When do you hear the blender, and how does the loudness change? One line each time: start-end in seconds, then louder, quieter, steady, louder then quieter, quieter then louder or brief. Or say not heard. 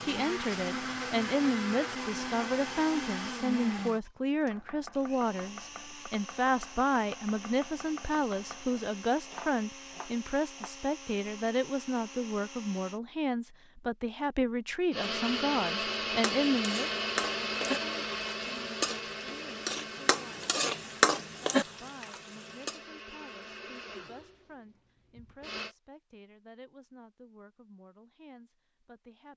0.0-13.0 quieter
14.9-25.8 quieter.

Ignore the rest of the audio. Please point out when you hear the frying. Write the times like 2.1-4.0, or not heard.
16.2-22.8.